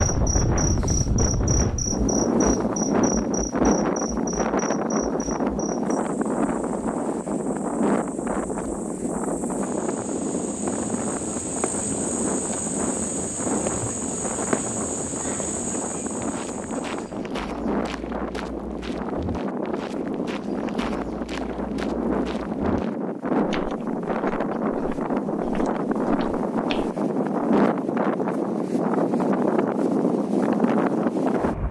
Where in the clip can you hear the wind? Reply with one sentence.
The wind can be heard from 0.0 to 31.6 s.